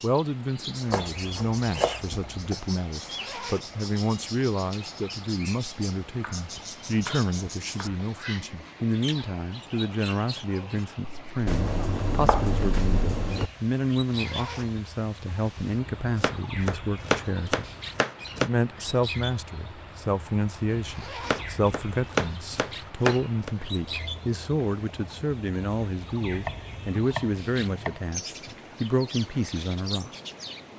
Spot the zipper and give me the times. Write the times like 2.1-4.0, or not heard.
3.0-3.8, 14.1-14.8, 20.9-21.6.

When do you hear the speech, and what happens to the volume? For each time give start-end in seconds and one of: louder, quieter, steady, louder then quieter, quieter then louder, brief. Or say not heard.
0.0-17.6 steady
18.4-30.1 steady.